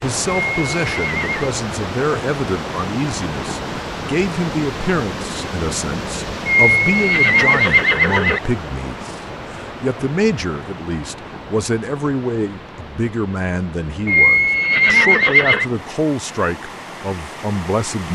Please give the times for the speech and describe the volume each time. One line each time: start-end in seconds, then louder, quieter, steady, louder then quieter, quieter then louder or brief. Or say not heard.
0.0-18.1 steady.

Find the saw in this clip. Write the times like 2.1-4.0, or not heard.
not heard.